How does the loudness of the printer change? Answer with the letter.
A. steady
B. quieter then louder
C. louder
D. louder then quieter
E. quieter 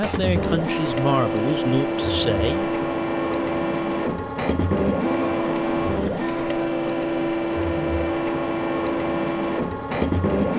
A.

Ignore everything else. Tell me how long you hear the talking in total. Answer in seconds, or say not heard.
3 s.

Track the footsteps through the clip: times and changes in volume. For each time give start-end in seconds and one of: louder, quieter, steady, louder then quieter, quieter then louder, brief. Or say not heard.
not heard.